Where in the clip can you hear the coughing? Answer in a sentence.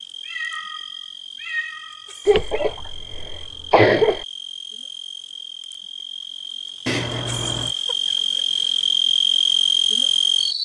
The coughing can be heard from 2.2 to 4.2 s.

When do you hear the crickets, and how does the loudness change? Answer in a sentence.
The crickets can be heard from 0.0 to 10.6 s, getting louder.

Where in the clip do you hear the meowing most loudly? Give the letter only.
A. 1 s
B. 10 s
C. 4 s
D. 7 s
D.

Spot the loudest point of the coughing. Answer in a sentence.
The volume of the coughing peaks at 4 seconds.